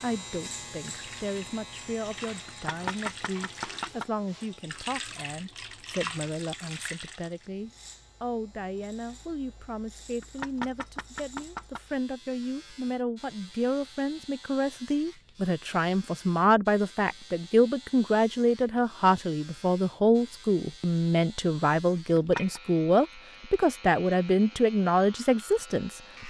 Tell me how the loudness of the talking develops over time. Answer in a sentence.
The loudness of the talking goes up.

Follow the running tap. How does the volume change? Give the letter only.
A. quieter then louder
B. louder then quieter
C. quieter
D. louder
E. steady
D.